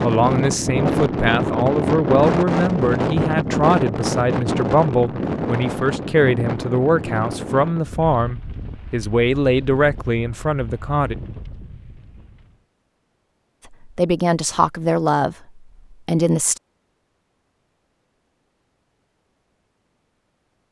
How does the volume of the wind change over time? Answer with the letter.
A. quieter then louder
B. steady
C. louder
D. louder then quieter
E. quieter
E.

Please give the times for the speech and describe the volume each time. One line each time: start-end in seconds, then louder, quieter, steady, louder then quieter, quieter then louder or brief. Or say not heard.
0.0-11.2 steady
13.7-16.6 brief.